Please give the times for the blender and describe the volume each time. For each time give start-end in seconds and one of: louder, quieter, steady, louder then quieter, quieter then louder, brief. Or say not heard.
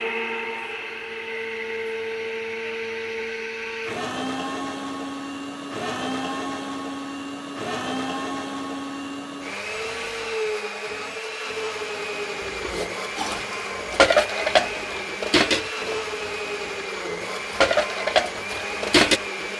0.0-19.5 steady.